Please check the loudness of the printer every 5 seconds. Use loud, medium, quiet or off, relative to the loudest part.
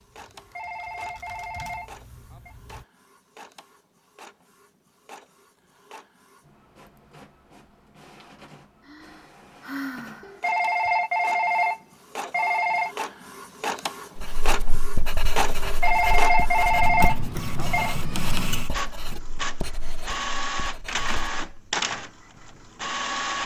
quiet, quiet, medium, loud, loud.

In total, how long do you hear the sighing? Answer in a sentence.
You can hear the sighing for 2 seconds altogether.